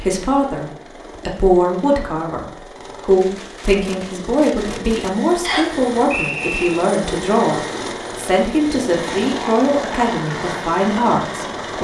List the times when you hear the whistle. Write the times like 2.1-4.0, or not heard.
5.4-6.7.